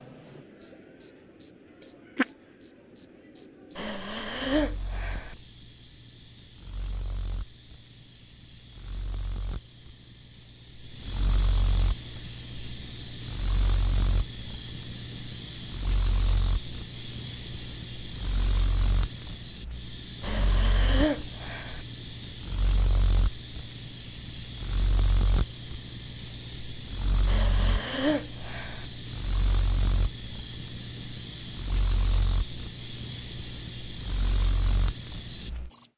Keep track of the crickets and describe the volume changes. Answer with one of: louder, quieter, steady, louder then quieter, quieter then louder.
louder.